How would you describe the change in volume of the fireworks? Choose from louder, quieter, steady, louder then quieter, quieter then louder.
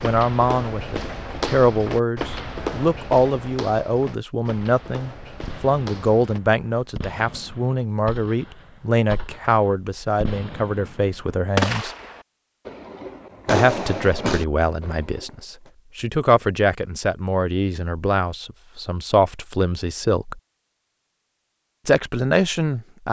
louder.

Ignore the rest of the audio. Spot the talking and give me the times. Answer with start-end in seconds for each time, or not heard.
0.0-11.9, 13.4-20.4, 21.9-23.0.